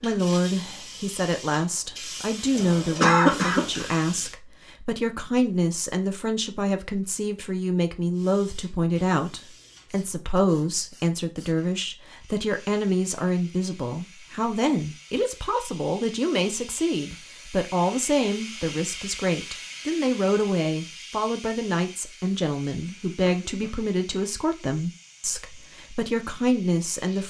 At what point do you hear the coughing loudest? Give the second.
3 s.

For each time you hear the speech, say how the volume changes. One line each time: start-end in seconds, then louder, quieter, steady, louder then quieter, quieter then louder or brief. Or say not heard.
0.0-27.2 steady.